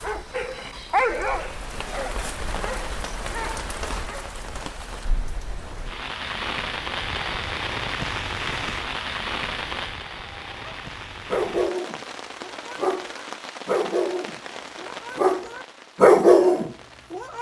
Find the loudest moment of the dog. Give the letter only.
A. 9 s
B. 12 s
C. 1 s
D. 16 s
D.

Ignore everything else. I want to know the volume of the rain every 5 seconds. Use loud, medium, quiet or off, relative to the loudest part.
medium, loud, medium, quiet.